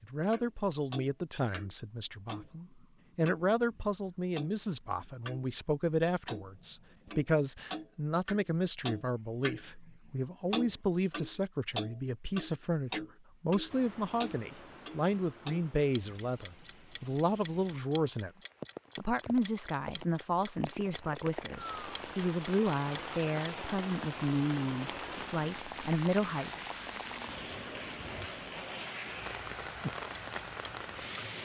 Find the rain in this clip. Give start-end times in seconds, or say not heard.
13.7-31.3.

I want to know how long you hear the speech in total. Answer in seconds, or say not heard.
26 s.